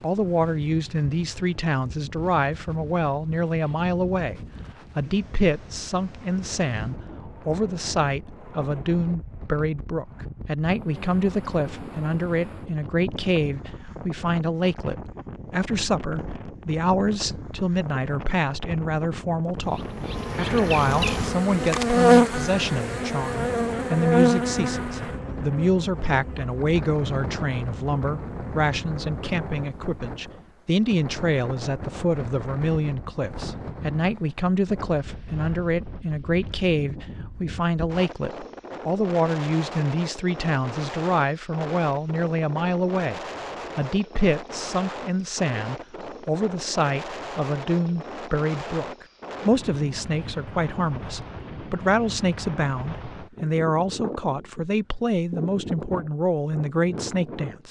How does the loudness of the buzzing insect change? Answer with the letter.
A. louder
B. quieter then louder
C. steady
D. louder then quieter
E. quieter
D.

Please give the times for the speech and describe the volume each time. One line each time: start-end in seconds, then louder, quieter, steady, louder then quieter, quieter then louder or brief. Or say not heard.
0.0-57.6 steady.